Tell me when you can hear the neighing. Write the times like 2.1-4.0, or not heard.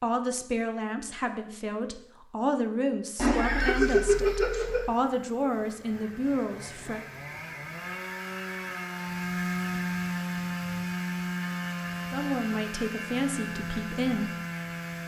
3.1-4.9.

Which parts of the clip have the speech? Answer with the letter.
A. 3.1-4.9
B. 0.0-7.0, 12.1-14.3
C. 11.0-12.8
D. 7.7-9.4
B.